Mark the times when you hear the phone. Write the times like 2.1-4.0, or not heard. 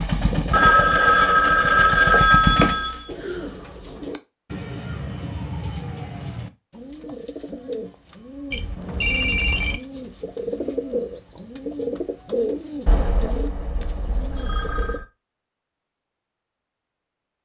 0.5-3.0, 8.5-9.8, 12.8-15.1.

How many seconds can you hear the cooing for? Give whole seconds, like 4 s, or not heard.
12 s.